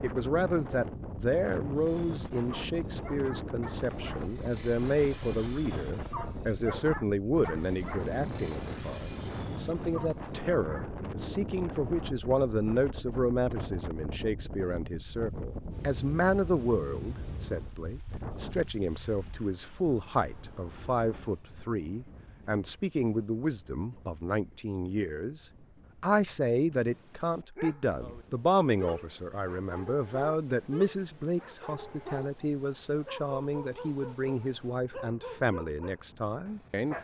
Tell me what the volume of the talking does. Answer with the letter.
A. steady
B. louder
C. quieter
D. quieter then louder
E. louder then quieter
A.